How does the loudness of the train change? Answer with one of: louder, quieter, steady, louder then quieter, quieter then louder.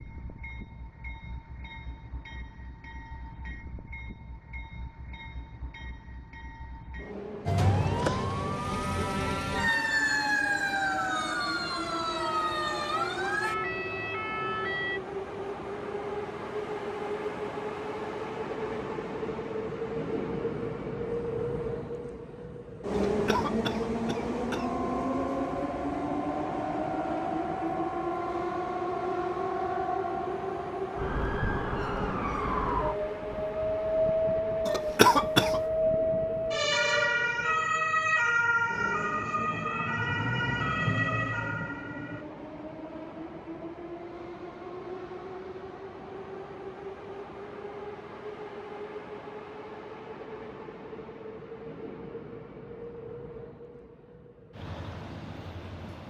louder then quieter.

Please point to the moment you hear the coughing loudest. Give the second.
35 s.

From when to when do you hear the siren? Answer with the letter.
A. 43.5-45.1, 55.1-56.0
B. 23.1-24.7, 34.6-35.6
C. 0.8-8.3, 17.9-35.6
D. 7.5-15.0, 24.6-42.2
D.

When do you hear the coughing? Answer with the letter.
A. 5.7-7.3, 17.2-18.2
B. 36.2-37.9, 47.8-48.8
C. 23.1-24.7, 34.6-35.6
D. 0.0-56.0
C.